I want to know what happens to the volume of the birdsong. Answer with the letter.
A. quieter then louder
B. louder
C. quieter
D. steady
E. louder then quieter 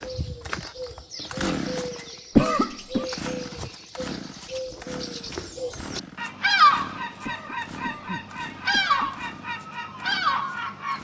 B.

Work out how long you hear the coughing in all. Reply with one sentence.
The coughing can be heard for 3 seconds in total.